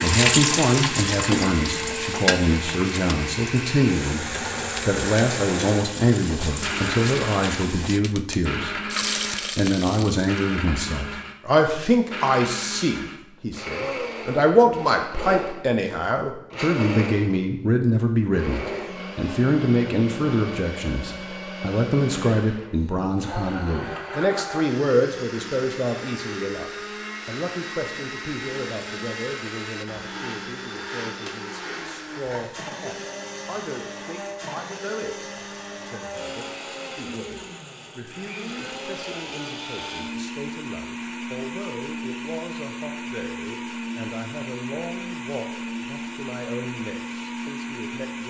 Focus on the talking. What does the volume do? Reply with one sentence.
The loudness of the talking goes down.